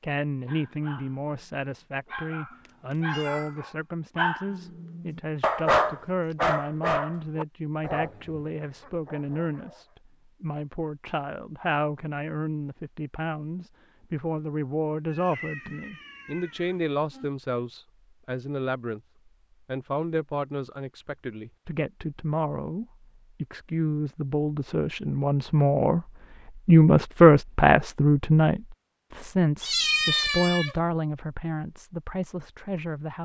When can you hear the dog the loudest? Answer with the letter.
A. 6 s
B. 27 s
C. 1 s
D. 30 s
A.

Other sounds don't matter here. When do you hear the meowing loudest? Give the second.
30 s.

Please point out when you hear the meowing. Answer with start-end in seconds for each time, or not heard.
2.5-3.6, 15.1-17.3, 29.6-30.8.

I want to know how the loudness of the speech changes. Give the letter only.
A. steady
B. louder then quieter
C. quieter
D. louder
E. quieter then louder
D.